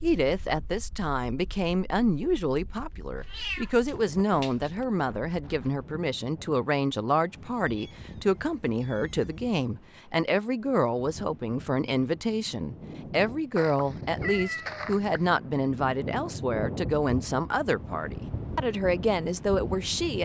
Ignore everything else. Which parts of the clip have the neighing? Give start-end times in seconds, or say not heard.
not heard.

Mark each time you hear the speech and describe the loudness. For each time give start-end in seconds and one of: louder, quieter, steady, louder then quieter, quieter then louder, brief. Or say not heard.
0.0-20.2 steady.